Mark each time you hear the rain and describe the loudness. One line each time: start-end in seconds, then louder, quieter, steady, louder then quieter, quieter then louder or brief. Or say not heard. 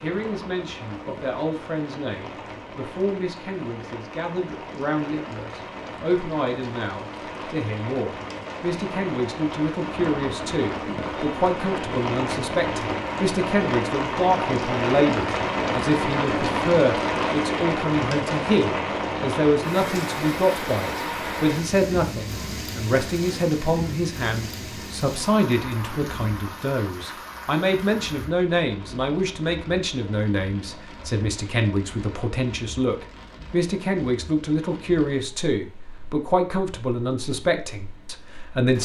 0.0-38.7 louder then quieter.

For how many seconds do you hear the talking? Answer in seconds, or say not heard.
39 s.